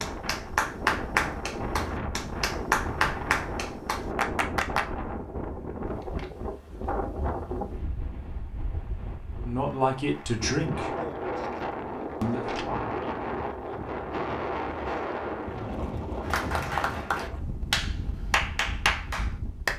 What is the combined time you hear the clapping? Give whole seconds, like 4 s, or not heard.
8 s.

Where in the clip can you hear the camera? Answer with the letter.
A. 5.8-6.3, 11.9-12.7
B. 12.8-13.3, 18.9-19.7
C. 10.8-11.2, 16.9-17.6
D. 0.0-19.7
A.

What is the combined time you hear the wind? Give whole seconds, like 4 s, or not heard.
20 s.